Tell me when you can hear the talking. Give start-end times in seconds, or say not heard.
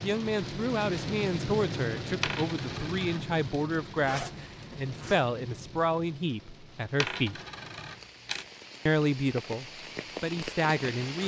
0.0-7.4, 8.8-11.2.